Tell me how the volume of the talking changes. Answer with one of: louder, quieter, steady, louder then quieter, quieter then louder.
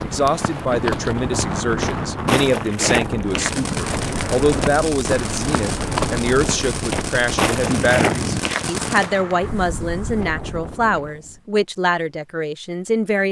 steady.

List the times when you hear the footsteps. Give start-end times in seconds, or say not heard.
0.0-9.4.